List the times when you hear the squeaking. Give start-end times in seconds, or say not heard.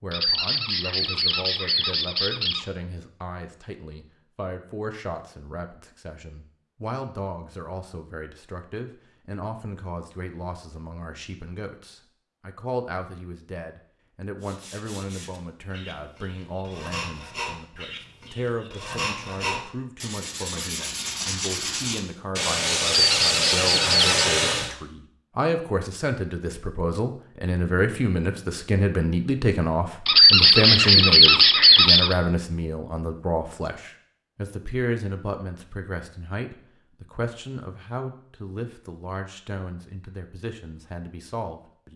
0.1-2.6, 22.9-24.3, 30.1-32.1.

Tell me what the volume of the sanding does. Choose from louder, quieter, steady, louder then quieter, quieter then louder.
louder.